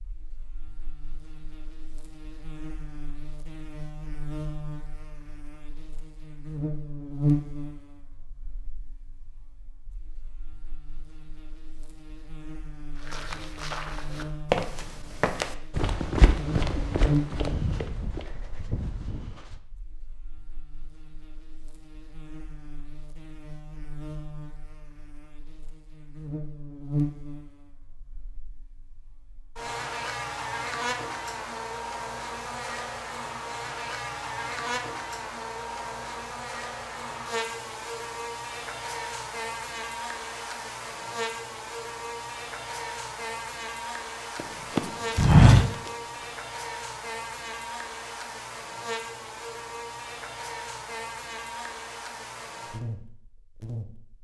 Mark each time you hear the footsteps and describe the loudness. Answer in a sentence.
You can hear the footsteps from 12.9 to 19.6 s, getting louder then quieter; and briefly from 44.4 to 46.2 s.